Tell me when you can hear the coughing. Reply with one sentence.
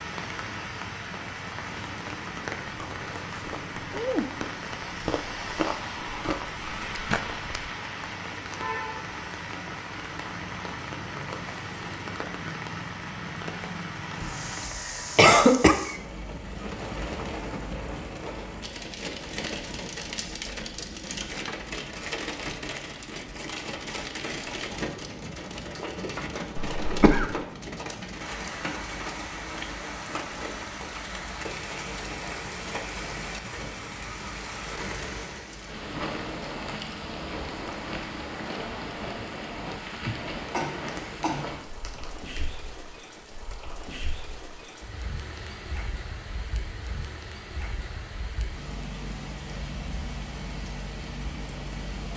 The coughing can be heard from 14.2 to 15.8 s, from 26.6 to 27.3 s and from 40.5 to 42.5 s.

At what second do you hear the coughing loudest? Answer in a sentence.
The volume of the coughing peaks at 15 seconds.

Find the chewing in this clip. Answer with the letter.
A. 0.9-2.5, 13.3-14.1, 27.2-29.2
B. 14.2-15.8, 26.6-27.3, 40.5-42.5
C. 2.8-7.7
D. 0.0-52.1
C.